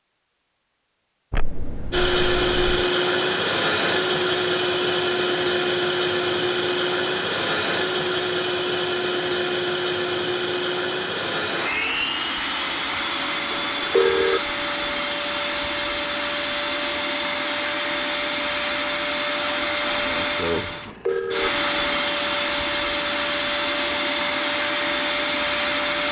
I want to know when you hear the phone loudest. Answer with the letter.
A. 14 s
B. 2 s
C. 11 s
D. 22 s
A.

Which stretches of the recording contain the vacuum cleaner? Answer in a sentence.
The vacuum cleaner can be heard from 1.9 to 26.0 s.